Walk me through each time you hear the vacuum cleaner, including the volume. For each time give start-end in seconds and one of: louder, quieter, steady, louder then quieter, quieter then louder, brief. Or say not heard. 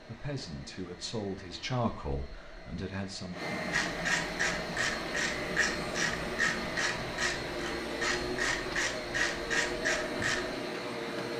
0.0-11.3 louder.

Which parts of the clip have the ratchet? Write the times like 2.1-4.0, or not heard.
3.7-10.6.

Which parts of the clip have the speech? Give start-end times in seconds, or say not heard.
0.0-3.4.